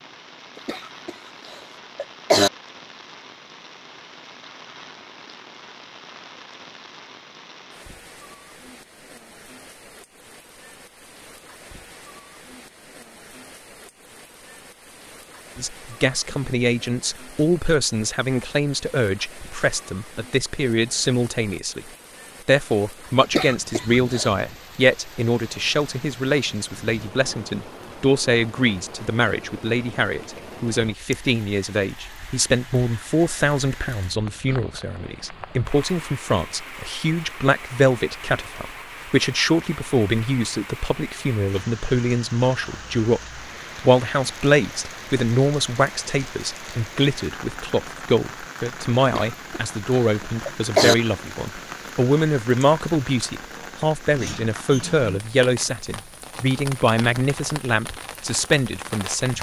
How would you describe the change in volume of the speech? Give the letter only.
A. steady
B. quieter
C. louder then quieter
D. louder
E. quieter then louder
A.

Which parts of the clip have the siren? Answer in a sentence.
The siren can't be heard in this clip.